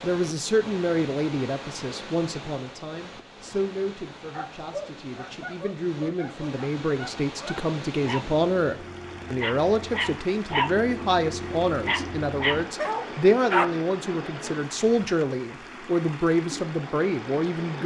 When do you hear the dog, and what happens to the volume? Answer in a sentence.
You can hear the dog from 4.3 to 13.7 s, getting louder.